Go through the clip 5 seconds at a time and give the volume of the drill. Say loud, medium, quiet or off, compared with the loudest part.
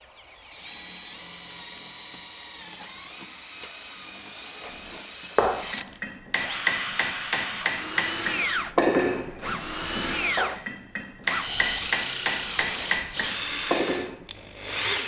medium, loud, loud.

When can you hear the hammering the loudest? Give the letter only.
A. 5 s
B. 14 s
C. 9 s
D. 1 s
C.